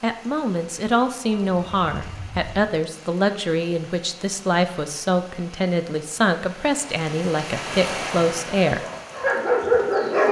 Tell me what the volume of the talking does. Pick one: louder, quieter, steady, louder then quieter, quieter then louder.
steady.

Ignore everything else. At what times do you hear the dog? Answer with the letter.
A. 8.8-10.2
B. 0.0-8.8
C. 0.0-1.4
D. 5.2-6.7
A.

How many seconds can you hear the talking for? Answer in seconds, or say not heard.
9 s.